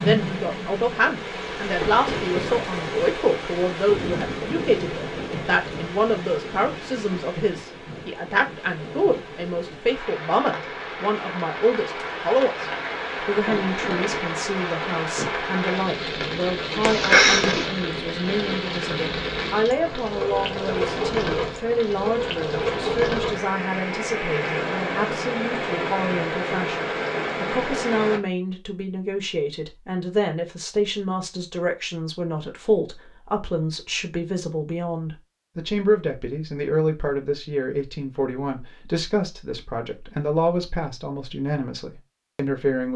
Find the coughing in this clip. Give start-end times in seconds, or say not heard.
16.8-17.6.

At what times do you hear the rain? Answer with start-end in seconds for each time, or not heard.
0.0-28.2.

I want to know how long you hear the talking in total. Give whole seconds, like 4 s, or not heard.
43 s.